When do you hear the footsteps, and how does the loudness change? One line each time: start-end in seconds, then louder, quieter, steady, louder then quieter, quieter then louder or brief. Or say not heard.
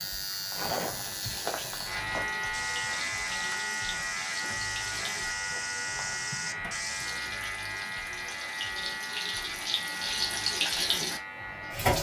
0.4-7.2 steady.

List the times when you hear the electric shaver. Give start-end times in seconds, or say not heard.
0.0-11.9.